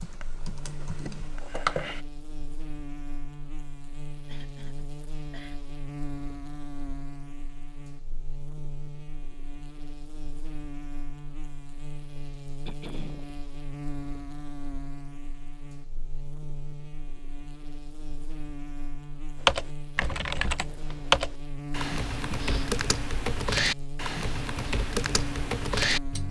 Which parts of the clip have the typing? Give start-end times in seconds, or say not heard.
0.0-2.0, 19.4-26.2.